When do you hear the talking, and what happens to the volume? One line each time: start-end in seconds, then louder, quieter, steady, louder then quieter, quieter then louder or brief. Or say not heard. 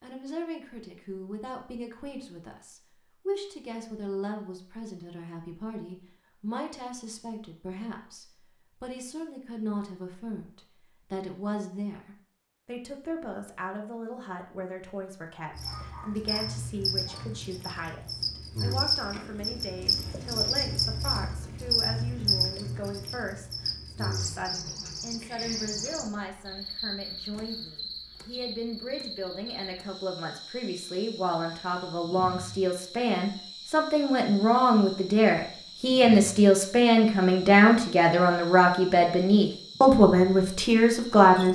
0.0-41.5 louder.